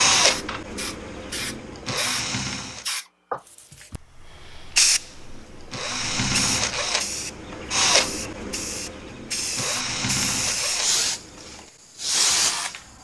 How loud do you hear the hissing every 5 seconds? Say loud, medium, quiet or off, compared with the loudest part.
loud, medium, loud.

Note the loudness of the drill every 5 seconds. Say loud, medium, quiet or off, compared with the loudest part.
loud, loud, medium.